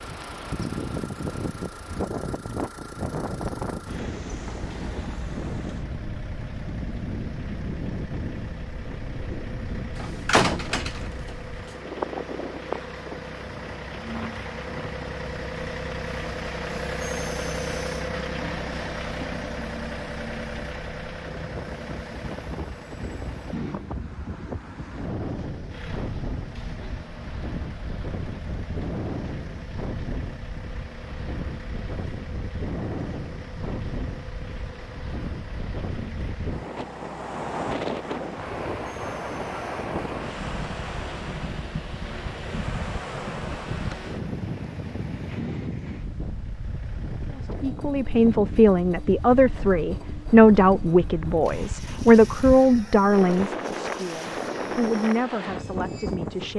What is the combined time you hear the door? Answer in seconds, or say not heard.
2 s.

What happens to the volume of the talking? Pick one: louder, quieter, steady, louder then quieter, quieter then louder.
quieter.